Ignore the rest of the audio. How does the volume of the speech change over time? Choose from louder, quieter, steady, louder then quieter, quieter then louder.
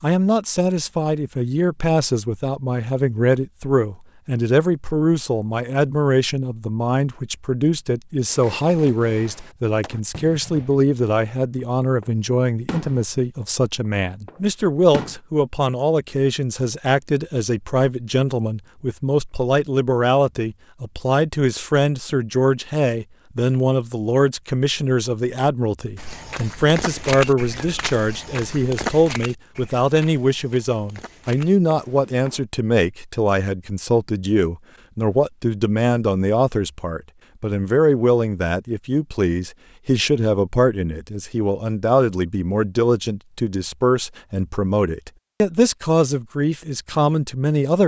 steady.